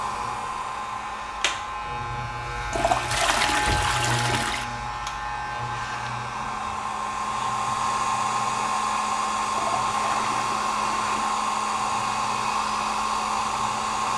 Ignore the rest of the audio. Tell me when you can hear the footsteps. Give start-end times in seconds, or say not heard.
not heard.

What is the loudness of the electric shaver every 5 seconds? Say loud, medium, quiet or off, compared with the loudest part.
loud, medium, medium.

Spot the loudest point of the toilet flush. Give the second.
3 s.